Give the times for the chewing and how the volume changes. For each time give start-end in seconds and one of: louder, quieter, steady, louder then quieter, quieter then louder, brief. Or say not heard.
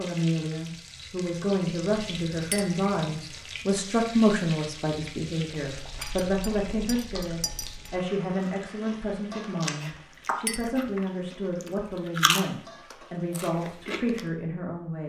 5.7-14.2 louder.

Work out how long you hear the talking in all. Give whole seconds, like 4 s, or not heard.
15 s.